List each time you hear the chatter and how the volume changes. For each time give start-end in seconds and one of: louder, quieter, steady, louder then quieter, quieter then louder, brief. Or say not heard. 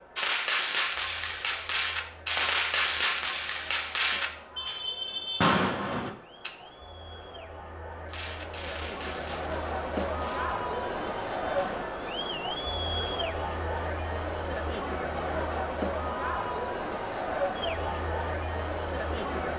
0.0-19.5 louder.